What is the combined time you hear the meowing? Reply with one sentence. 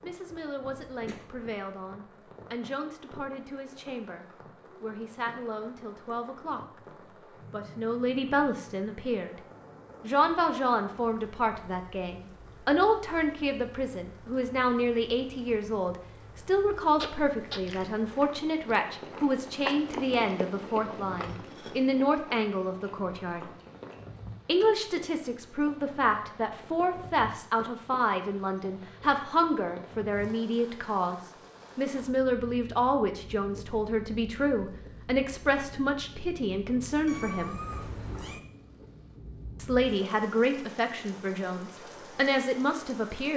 The meowing can be heard for 3 seconds in total.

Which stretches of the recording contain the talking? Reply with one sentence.
You can hear the talking from 0.0 to 6.8 s, from 7.5 to 9.3 s, from 10.0 to 23.4 s, from 24.4 to 37.6 s and from 39.5 to 43.3 s.